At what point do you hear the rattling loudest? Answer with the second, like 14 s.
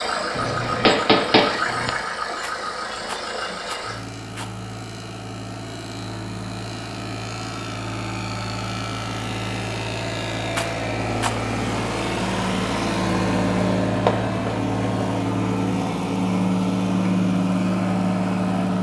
11 s.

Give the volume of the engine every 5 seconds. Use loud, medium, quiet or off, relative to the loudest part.
medium, medium, loud, loud.